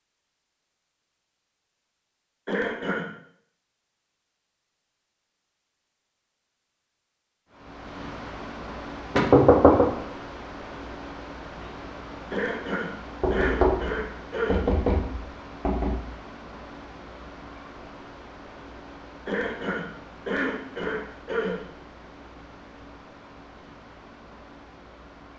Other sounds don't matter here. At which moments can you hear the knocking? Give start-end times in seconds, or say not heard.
9.2-9.8, 13.2-16.0.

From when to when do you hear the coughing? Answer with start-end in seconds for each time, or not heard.
2.5-3.0, 12.3-14.7, 19.2-21.7.